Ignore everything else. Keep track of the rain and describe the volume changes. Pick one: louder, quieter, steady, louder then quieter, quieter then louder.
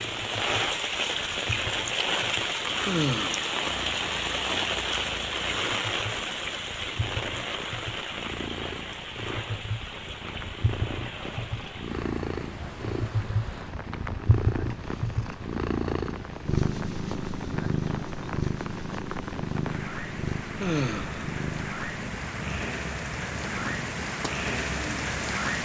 quieter then louder.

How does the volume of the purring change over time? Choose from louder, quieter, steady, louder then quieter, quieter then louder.
louder then quieter.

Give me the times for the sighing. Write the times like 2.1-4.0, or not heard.
2.9-3.5, 20.6-21.2.